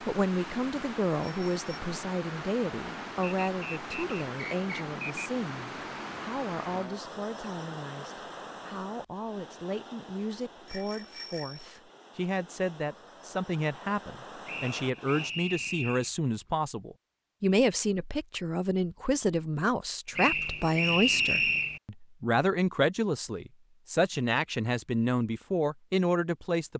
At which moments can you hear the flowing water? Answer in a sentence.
The flowing water can be heard from 0.0 to 15.3 s.